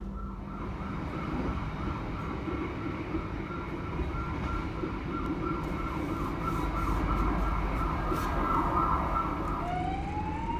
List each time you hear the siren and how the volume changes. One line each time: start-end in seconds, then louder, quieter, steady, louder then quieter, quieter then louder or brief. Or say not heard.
0.0-10.5 louder.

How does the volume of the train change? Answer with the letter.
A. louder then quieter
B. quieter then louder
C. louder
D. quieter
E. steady
E.